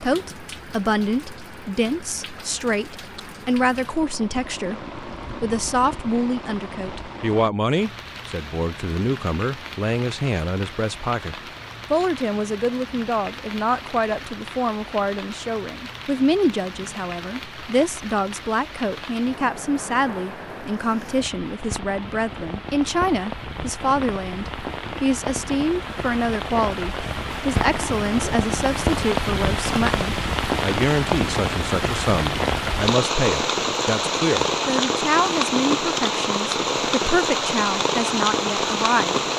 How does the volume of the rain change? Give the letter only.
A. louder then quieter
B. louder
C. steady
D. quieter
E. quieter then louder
B.